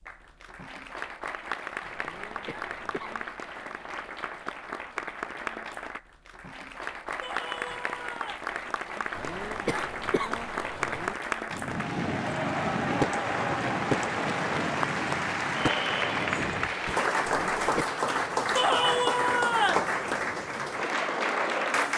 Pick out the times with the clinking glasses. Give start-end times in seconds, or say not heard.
not heard.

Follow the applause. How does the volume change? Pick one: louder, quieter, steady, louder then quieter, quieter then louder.
louder.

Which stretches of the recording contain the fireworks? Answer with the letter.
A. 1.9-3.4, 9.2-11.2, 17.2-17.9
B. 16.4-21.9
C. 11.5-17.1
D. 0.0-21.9
C.